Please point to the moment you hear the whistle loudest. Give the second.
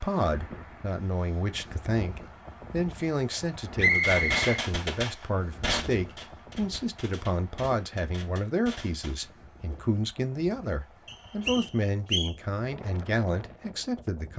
4 s.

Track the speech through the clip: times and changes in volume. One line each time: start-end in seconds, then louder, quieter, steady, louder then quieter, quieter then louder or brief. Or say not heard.
0.0-14.3 steady.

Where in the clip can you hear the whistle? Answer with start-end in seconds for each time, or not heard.
3.8-4.4, 11.1-12.3.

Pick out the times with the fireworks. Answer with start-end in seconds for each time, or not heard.
3.9-9.9.